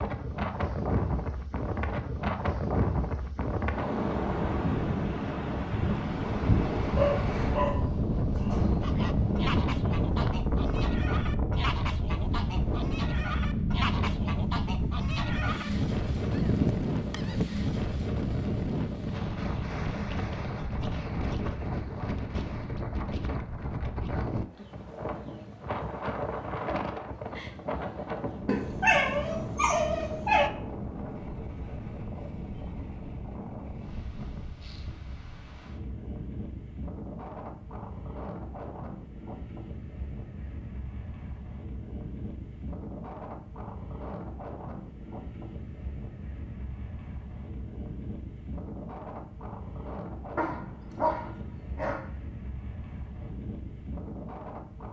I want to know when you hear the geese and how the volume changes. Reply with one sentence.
The geese can be heard from 8.8 to 17.6 s, getting louder.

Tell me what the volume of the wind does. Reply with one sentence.
The volume of the wind goes down.